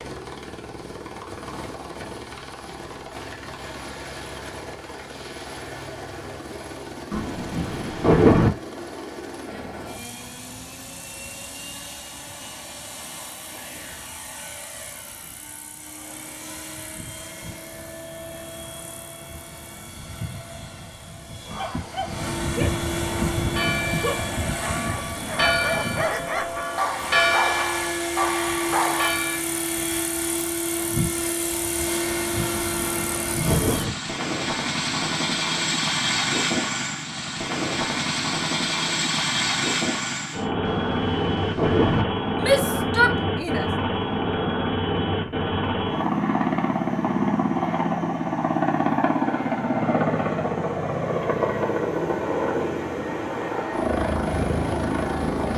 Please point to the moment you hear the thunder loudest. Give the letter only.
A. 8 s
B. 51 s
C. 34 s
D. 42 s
A.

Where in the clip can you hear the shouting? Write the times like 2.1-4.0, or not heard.
42.4-43.7.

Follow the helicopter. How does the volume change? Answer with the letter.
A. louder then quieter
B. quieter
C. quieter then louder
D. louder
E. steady
D.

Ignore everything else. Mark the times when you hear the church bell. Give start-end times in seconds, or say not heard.
23.4-29.4.